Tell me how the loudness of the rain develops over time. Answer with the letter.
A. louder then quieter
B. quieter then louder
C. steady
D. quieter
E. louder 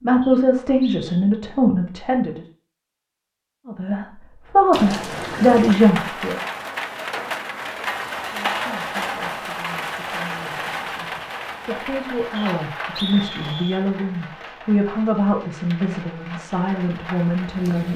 D.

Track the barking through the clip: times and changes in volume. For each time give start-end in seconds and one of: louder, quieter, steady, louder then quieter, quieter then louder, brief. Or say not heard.
not heard.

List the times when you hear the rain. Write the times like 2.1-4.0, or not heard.
4.7-17.9.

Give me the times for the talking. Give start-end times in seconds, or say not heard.
0.0-2.4, 3.6-6.4, 8.3-17.9.